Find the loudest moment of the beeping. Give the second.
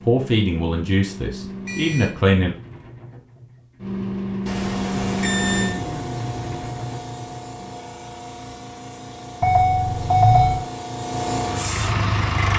10 s.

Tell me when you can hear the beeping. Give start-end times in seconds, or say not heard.
1.6-2.2, 4.5-5.8, 9.4-10.7.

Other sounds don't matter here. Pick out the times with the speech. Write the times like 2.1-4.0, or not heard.
0.0-2.5.